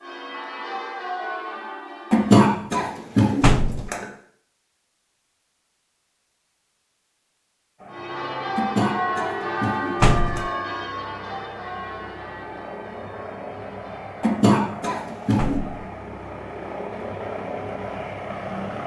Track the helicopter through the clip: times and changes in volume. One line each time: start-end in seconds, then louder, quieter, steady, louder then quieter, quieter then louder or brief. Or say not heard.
7.8-18.8 louder.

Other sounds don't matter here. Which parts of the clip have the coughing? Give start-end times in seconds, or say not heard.
2.1-4.0, 8.6-10.5, 14.2-15.6.